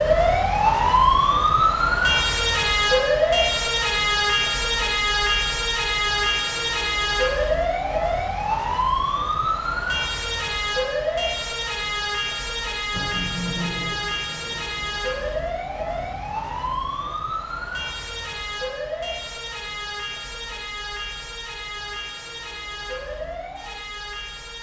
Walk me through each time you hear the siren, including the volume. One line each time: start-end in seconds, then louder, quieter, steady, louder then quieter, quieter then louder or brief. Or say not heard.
0.0-24.5 quieter.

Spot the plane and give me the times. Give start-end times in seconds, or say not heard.
12.9-17.2.